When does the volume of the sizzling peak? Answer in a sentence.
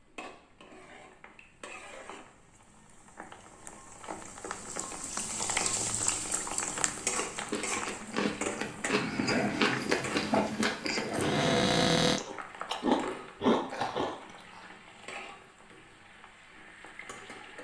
The volume of the sizzling peaks at 6 seconds.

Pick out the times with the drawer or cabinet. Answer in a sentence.
The drawer or cabinet can be heard from 11.2 to 12.2 s.